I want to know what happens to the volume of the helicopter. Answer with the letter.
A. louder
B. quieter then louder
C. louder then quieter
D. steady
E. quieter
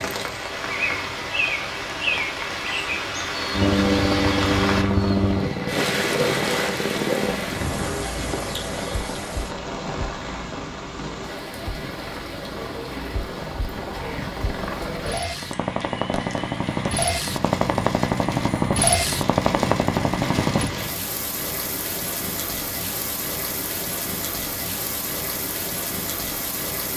B.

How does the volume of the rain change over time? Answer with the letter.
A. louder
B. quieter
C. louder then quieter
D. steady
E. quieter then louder
E.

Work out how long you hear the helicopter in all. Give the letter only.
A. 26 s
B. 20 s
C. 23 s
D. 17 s
D.